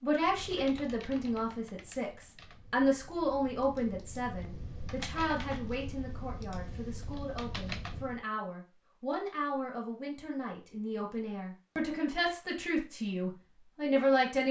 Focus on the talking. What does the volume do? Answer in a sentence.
The volume of the talking goes down, then up.